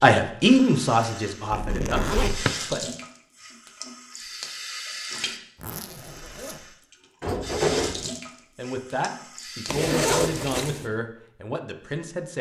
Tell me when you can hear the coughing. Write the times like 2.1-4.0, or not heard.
not heard.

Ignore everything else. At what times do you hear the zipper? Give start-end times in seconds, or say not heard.
1.5-2.5, 5.6-6.7, 9.7-10.8.